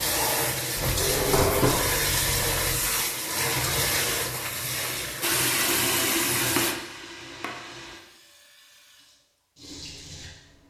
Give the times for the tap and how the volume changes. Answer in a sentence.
You can hear the tap from 0.0 to 10.6 s, getting quieter.